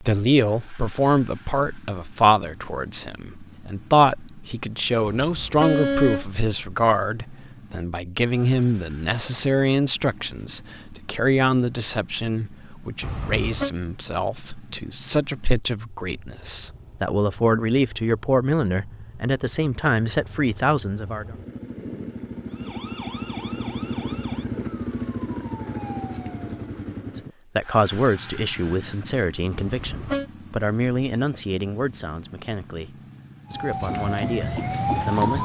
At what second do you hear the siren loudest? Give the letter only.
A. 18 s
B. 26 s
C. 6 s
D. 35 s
D.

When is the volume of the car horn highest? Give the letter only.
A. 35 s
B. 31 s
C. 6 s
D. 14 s
C.